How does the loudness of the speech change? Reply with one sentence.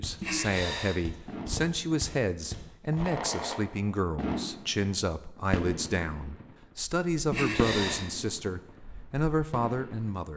The volume of the speech stays about the same.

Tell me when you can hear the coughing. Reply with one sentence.
You can hear the coughing from 0.2 to 0.9 s and from 7.3 to 8.1 s.